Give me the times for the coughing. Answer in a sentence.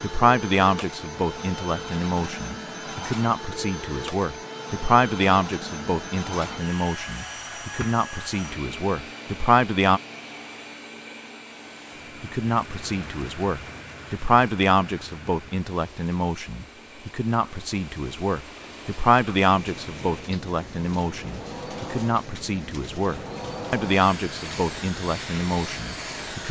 You can't hear the coughing here.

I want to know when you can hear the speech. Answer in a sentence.
The speech can be heard from 0.0 to 10.0 s and from 12.2 to 26.4 s.